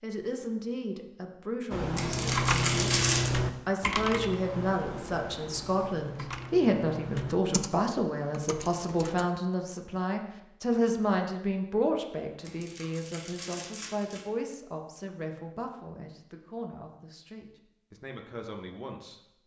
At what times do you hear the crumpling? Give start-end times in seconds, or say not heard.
1.9-3.3, 12.4-14.3.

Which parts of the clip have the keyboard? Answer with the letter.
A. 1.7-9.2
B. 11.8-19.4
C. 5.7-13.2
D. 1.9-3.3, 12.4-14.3
A.